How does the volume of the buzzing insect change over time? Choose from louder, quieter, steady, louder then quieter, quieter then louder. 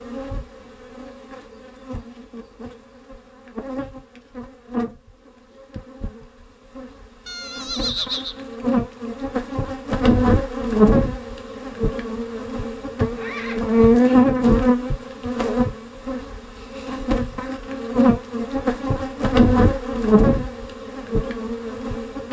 louder.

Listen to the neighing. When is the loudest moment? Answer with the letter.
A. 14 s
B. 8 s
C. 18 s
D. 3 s
B.